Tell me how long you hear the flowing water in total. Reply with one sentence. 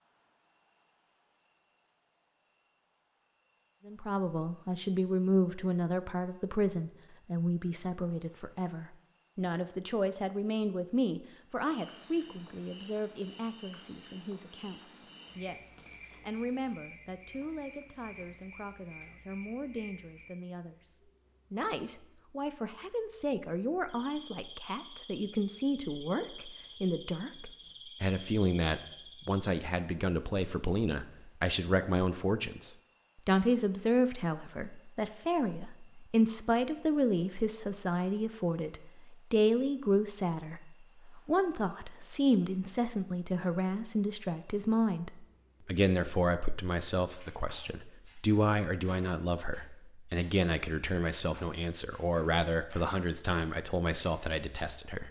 The flowing water can't be heard in this clip.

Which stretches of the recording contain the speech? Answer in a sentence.
You can hear the speech from 3.9 to 55.0 s.